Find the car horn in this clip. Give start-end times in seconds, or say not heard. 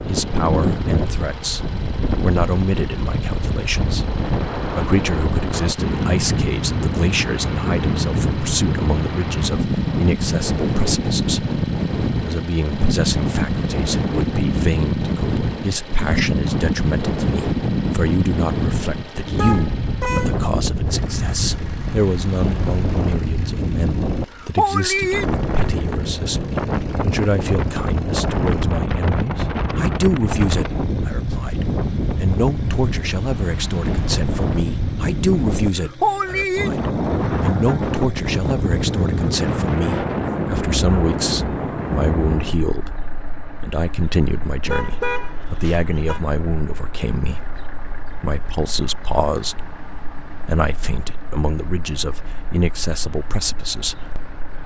19.4-20.4, 44.6-46.2.